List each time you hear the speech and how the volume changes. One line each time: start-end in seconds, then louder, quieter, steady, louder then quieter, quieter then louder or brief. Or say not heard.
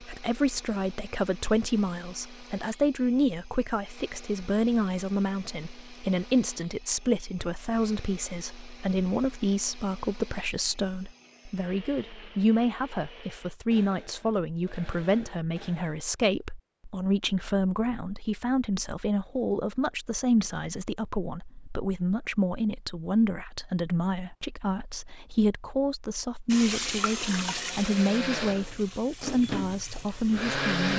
0.0-30.9 steady.